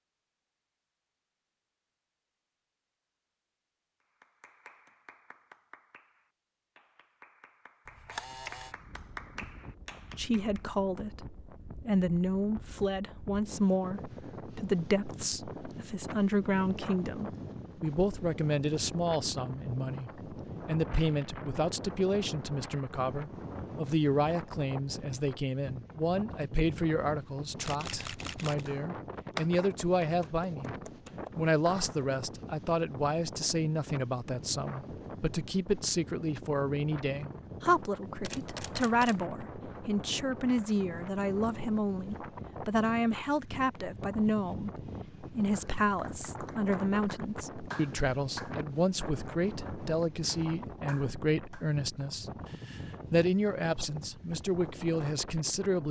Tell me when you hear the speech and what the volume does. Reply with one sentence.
The speech can be heard from 10.2 to 30.7 s, at a steady volume; and from 31.4 to 55.8 s, at a steady volume.